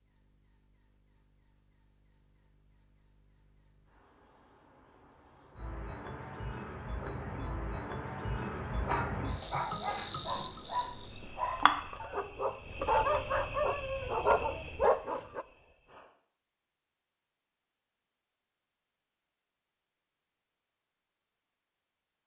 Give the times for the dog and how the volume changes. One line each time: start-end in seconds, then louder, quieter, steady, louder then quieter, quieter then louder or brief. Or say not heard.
8.8-15.4 louder.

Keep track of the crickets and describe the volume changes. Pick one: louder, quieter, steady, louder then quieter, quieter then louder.
louder then quieter.